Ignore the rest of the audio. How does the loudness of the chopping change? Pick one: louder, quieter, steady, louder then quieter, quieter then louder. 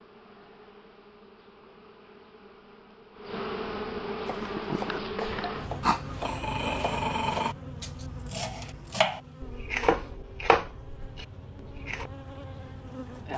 louder.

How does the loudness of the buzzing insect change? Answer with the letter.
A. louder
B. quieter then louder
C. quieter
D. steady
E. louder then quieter
E.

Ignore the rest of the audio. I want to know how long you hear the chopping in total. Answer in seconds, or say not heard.
8 s.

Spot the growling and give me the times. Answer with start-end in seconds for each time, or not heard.
5.8-7.5.